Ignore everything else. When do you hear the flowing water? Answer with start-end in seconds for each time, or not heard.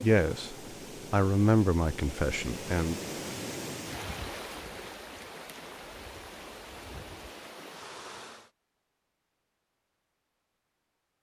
0.0-8.5.